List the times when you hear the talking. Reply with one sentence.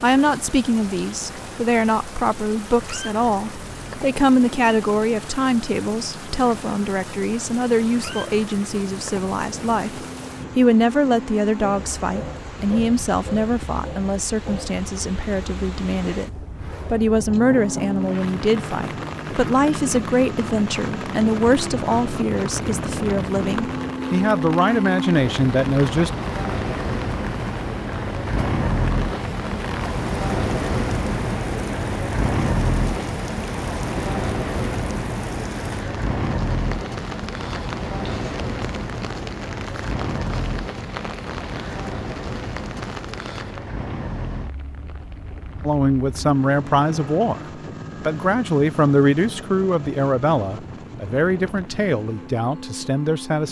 You can hear the talking from 0.0 to 26.1 s and from 45.6 to 53.4 s.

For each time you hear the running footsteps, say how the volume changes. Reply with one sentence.
You can't hear the running footsteps here.